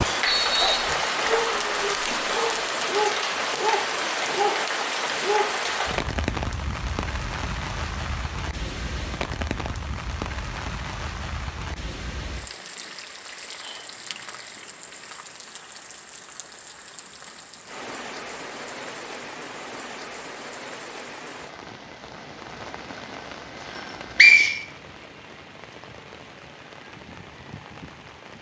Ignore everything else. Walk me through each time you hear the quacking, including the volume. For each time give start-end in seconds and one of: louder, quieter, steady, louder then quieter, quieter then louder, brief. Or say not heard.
not heard.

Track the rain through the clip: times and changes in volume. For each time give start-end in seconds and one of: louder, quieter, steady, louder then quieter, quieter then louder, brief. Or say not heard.
0.0-28.3 quieter.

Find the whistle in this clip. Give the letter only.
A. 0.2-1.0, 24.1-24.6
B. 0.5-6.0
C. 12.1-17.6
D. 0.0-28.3
A.